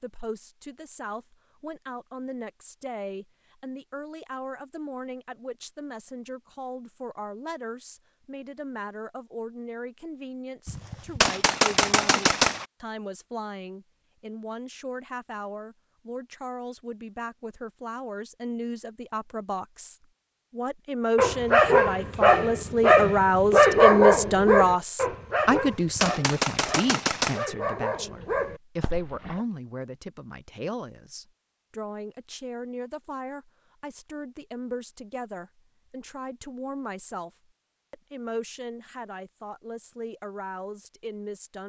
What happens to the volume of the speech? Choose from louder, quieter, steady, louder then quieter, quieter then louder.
louder then quieter.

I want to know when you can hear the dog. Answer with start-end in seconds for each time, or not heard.
21.1-29.4.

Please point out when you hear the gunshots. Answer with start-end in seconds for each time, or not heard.
10.7-12.7, 25.5-27.4.